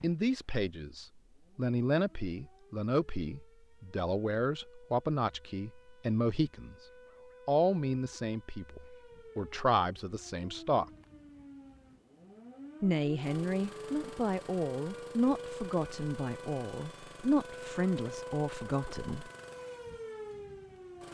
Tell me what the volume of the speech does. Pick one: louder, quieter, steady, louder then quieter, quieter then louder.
steady.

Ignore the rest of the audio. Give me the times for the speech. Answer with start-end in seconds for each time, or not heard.
0.0-6.8, 7.5-10.8, 12.8-19.3.